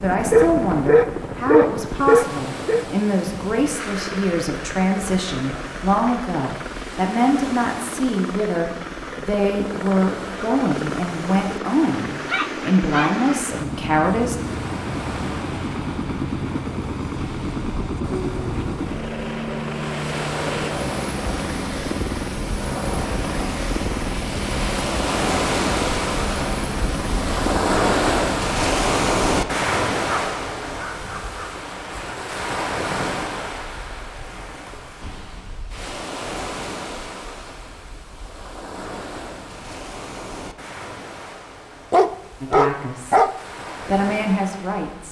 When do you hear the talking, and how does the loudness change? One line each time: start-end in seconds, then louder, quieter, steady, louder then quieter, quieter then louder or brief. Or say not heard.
0.0-14.3 steady
42.4-45.0 brief.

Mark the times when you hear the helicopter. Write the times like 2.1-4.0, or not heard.
0.0-27.8.